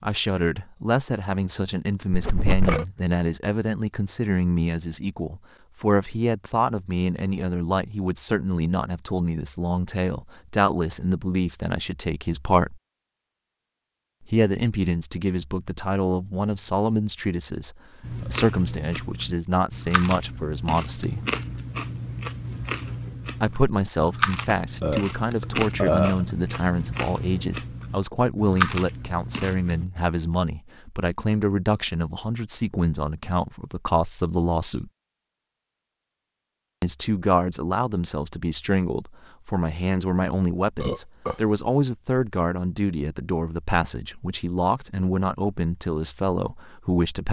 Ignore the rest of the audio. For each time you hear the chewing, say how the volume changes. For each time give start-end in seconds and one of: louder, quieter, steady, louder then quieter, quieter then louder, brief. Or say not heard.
18.0-29.9 louder.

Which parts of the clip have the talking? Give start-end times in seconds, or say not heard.
0.0-12.8, 14.3-21.2, 23.4-34.9, 36.8-47.2.